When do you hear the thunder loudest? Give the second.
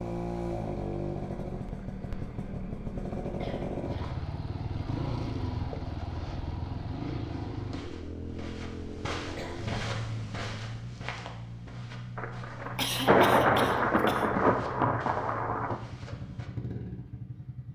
13 s.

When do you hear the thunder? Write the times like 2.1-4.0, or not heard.
12.2-15.8.